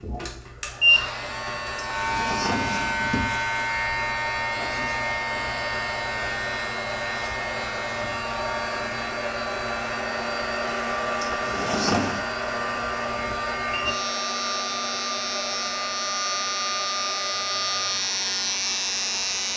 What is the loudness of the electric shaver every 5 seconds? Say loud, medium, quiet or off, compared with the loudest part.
loud, medium, medium, loud.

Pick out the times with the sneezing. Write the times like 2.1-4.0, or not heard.
not heard.